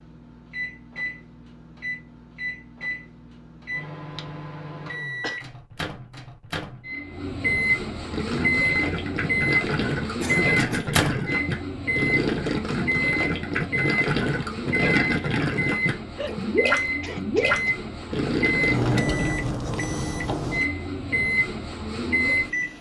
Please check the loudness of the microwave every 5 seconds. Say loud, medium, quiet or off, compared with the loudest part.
medium, loud, loud, loud, loud.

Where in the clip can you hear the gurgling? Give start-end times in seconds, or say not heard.
8.1-19.4.